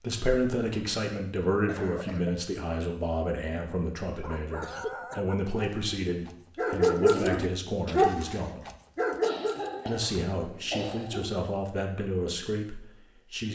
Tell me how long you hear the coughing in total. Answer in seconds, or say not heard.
4 s.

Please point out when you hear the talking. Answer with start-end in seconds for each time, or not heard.
0.0-8.7, 9.8-13.5.